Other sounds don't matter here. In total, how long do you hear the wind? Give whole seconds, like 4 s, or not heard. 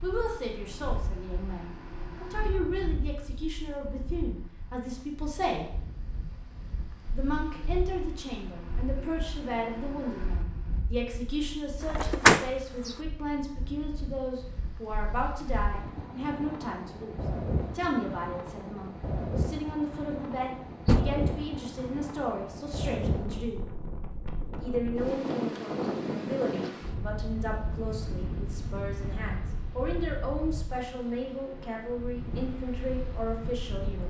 34 s.